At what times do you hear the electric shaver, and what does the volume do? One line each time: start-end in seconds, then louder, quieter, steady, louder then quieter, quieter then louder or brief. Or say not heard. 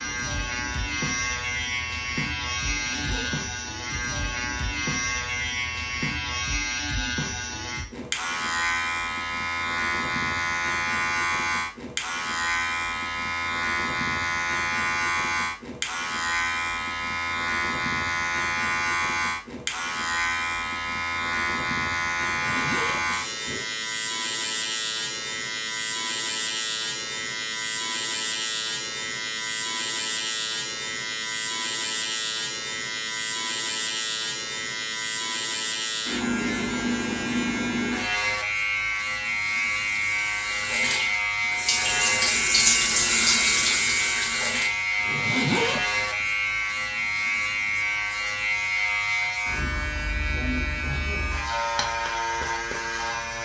0.0-53.4 steady.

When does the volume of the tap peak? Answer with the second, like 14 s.
43 s.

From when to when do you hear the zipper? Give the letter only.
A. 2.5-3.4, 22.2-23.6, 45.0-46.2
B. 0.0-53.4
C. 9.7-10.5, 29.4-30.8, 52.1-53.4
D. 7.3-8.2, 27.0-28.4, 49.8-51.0
A.